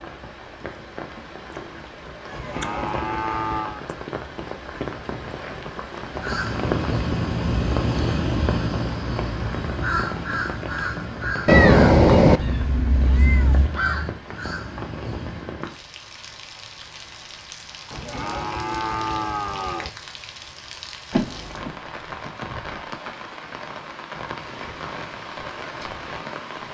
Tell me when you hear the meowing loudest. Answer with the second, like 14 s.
12 s.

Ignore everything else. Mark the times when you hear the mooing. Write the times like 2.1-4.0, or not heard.
2.3-3.9, 17.9-19.9.